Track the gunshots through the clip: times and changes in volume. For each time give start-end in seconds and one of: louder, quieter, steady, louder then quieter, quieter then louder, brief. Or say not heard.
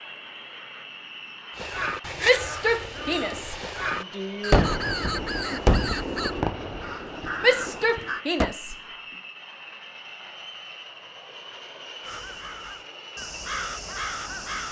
4.5-8.6 louder then quieter.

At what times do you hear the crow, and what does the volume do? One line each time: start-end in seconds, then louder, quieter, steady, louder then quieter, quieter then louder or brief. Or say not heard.
1.5-8.2 steady
12.0-14.6 brief.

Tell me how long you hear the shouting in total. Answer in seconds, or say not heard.
4 s.